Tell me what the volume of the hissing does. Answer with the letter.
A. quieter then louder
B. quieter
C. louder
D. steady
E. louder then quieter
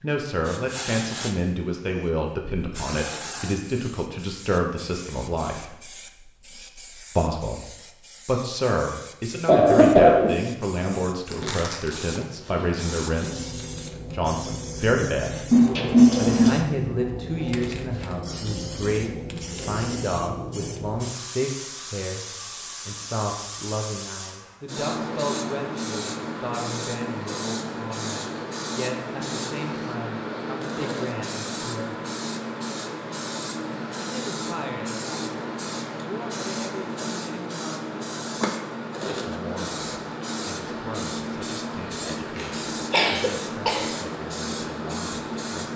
C.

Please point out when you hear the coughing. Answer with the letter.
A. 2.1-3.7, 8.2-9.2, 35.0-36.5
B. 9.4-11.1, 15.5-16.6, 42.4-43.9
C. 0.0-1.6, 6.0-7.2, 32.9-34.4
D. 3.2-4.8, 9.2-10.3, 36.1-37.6
B.